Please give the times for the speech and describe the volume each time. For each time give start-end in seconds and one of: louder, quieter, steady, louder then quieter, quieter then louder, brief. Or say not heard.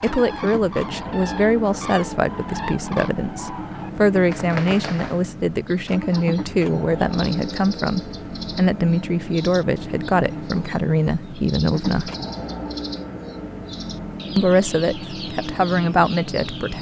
0.0-12.1 steady
14.3-16.7 brief.